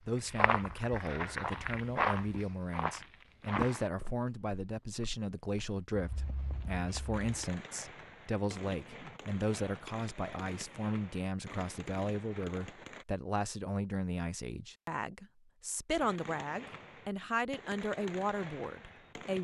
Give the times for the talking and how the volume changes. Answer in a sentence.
You can hear the talking from 0.1 to 19.3 s, at a steady volume.